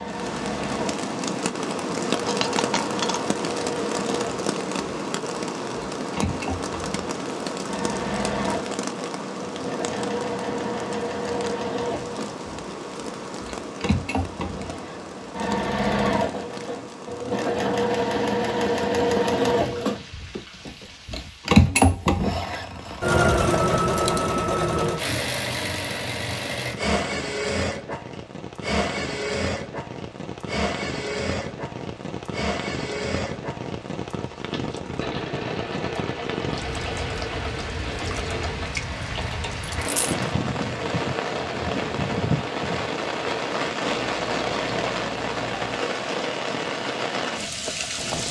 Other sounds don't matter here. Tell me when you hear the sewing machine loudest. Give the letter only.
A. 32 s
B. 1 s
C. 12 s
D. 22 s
D.